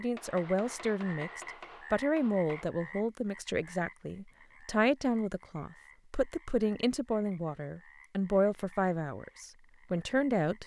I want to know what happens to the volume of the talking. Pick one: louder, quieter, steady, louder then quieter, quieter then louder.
steady.